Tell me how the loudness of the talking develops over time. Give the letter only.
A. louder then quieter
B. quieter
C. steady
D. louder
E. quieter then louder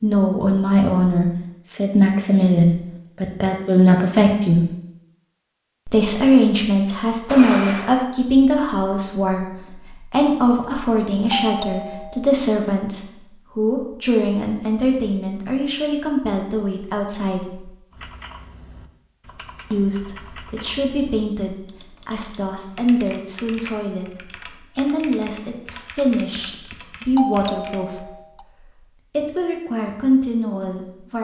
B.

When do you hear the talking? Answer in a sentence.
You can hear the talking from 0.0 to 4.7 s, from 5.8 to 17.7 s and from 19.7 to 31.1 s.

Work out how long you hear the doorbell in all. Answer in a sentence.
The doorbell can be heard for 5 seconds in total.